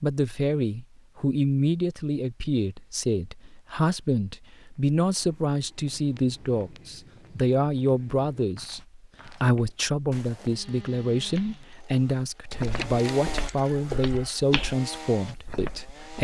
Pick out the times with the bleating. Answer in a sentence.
The bleating can't be heard in this clip.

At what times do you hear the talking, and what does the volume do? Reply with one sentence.
You can hear the talking from 0.0 to 16.1 s, at a steady volume.